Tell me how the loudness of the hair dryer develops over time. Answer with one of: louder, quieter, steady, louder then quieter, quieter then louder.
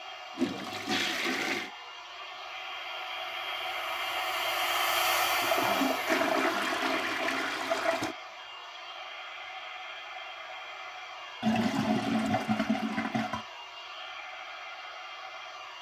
louder then quieter.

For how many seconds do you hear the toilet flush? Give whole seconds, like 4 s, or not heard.
6 s.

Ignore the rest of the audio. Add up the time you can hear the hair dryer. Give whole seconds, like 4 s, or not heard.
16 s.